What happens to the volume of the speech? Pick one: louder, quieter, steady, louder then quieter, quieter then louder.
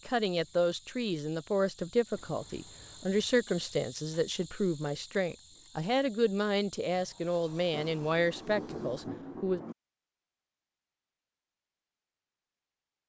steady.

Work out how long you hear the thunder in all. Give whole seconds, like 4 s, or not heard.
2 s.